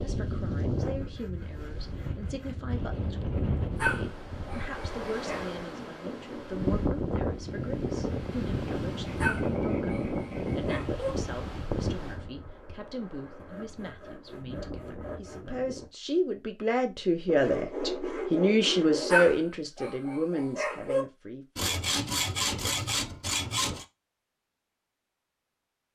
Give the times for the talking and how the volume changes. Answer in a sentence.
You can hear the talking from 0.0 to 21.6 s, getting louder.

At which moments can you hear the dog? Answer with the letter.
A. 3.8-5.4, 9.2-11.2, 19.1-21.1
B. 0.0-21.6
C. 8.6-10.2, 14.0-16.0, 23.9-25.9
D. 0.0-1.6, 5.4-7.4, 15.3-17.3
A.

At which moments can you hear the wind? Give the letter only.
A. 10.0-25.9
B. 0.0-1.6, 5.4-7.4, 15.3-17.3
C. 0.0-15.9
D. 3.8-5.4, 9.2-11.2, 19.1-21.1
C.